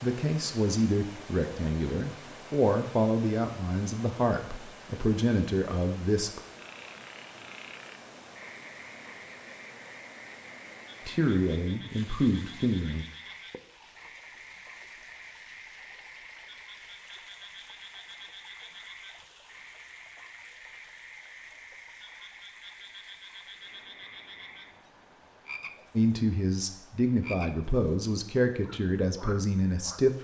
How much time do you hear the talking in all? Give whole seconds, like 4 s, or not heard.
13 s.